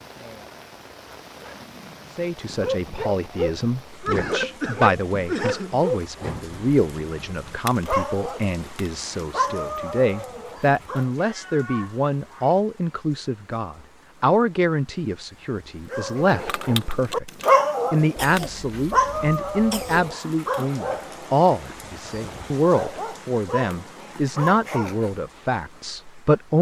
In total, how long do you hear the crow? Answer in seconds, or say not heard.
not heard.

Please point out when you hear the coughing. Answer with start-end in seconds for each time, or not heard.
4.0-5.8, 18.1-20.1.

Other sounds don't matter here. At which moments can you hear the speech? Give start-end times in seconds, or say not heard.
2.1-17.3, 17.9-26.5.